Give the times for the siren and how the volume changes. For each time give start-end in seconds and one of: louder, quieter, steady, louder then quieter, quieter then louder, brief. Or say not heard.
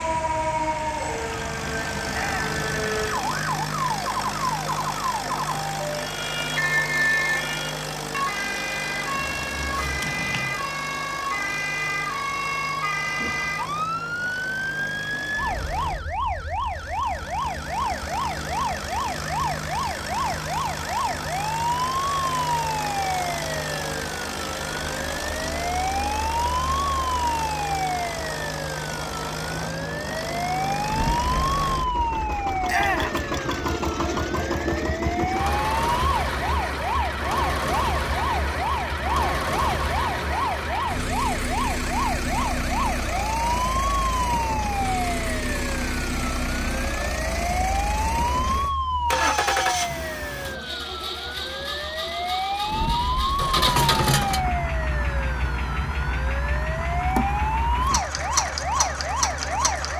0.0-59.9 steady.